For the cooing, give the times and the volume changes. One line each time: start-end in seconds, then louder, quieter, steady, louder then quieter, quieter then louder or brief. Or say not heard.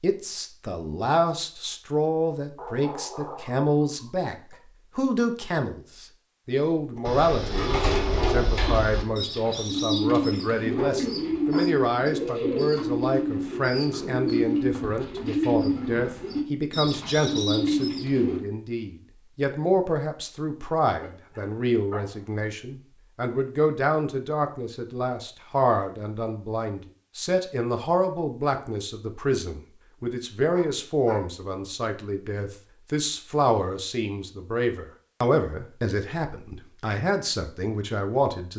7.0-18.4 steady.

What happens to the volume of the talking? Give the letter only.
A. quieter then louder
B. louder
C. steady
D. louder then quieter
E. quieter
C.